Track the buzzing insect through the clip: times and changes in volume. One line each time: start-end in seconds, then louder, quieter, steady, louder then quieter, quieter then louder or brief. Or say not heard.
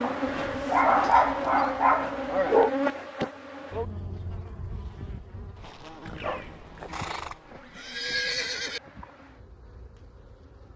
0.0-10.7 quieter.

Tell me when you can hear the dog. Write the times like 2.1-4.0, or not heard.
0.0-2.7, 6.2-7.1.